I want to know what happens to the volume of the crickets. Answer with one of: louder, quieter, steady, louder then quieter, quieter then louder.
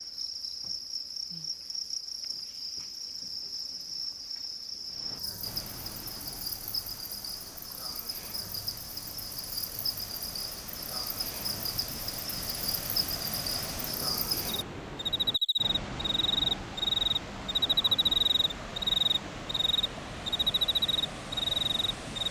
louder.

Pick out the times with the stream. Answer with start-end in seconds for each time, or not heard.
4.8-22.2.